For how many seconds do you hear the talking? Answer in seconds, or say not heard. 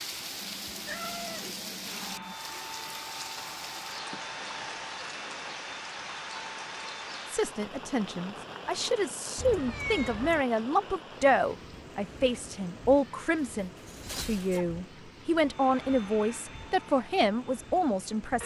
11 s.